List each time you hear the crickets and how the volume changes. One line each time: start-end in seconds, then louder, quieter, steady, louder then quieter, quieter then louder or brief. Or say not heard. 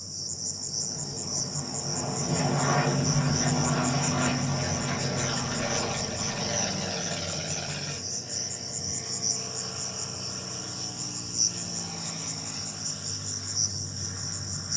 0.0-14.7 steady.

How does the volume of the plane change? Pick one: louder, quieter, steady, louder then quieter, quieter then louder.
quieter.